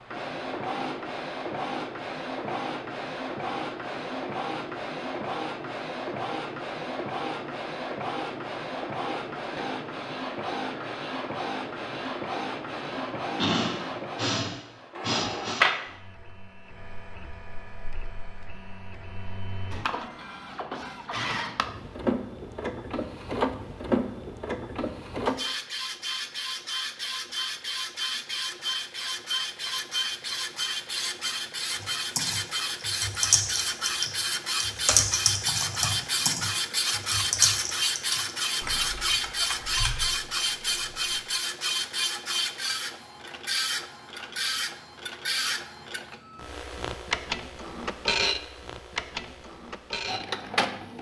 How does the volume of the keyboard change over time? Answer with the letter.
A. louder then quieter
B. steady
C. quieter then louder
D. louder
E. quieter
E.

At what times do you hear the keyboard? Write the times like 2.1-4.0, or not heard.
31.8-41.2.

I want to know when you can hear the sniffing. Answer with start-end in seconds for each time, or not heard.
12.9-15.7.